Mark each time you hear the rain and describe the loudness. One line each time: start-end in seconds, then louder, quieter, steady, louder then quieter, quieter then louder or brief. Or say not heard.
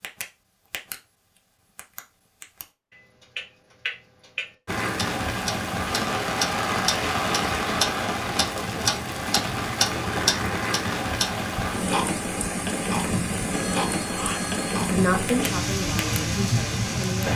4.7-17.3 steady.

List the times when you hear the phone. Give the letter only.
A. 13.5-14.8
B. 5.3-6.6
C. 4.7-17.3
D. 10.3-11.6
A.